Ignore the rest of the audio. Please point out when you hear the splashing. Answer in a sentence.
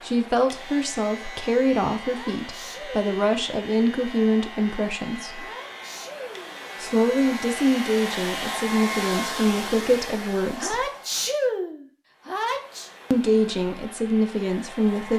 The splashing can't be heard in this clip.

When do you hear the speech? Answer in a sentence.
The speech can be heard from 0.0 to 5.5 s, from 6.8 to 10.8 s and from 13.1 to 15.1 s.